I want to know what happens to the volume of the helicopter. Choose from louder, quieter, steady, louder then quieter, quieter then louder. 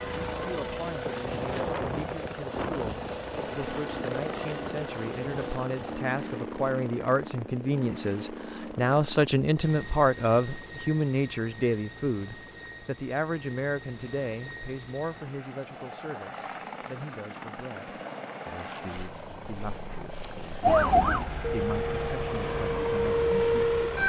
quieter then louder.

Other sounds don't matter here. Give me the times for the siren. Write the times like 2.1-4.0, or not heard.
20.6-24.0.